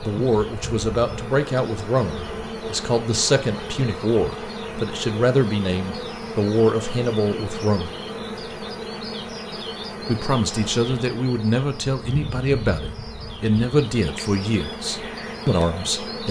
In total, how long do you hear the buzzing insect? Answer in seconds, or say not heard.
16 s.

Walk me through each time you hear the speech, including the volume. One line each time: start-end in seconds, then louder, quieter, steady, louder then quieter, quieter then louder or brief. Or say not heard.
0.0-7.9 steady
10.1-16.2 steady.